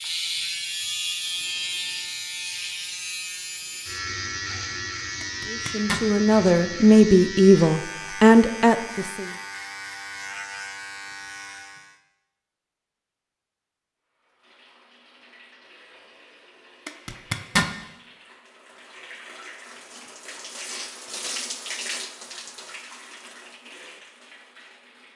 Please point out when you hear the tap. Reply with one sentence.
The tap can be heard from 14.2 to 25.1 s.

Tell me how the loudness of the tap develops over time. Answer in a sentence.
The loudness of the tap goes up, then down.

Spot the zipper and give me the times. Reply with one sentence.
You can hear the zipper from 5.2 to 6.0 s and from 16.9 to 17.7 s.